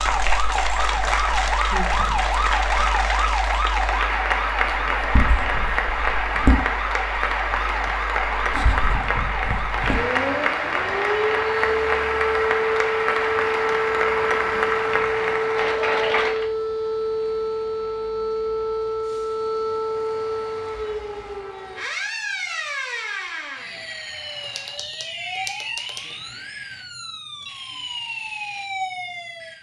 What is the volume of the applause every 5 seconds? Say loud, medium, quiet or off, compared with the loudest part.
loud, loud, loud, loud, off, off.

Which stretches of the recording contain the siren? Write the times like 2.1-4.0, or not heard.
0.0-29.5.